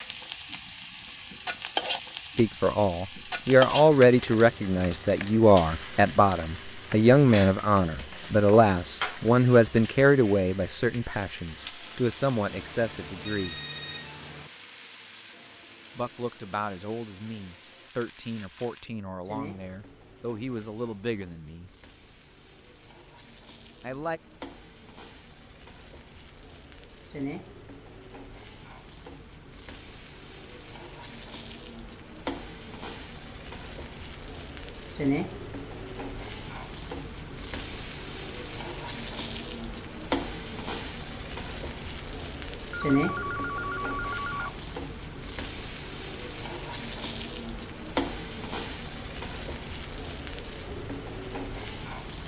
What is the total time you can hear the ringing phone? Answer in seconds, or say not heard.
4 s.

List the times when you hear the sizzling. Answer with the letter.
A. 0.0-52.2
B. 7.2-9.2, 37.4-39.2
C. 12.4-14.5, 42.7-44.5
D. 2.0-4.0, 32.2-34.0
A.